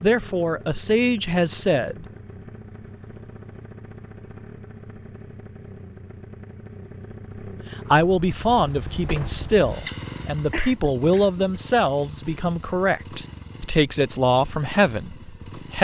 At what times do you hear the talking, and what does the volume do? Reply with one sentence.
You can hear the talking briefly from 0.0 to 2.0 s; and from 7.7 to 15.7 s, at a steady volume.